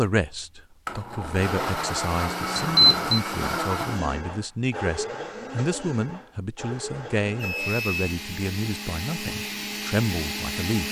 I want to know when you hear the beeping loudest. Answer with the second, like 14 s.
3 s.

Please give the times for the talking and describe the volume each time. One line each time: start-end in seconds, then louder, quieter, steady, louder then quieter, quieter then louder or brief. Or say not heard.
0.0-10.8 steady.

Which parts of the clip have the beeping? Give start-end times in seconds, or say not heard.
2.5-3.2, 7.4-8.1.